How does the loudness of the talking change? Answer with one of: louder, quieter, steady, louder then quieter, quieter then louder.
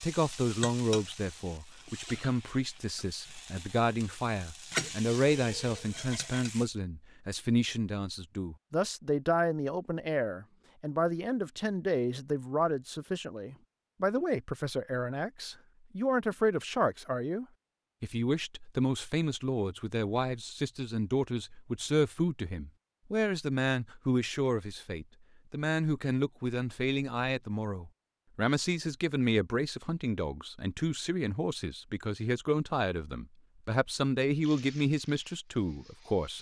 steady.